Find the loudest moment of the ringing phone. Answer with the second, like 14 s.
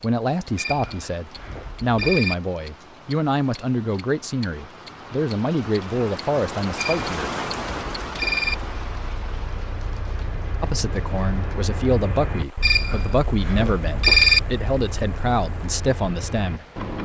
14 s.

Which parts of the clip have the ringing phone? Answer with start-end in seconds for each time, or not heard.
0.6-2.4, 6.8-8.6, 12.6-14.4.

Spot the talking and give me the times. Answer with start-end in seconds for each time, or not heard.
0.0-7.3, 10.6-16.6.